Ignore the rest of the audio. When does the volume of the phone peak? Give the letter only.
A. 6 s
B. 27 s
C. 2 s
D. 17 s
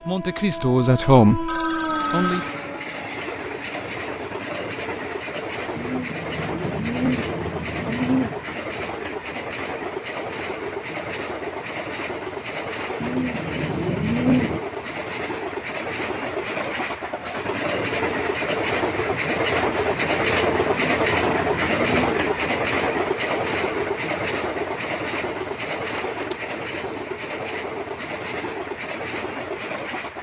C.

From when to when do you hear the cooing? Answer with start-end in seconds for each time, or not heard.
5.8-8.4, 13.0-14.6, 20.6-22.4.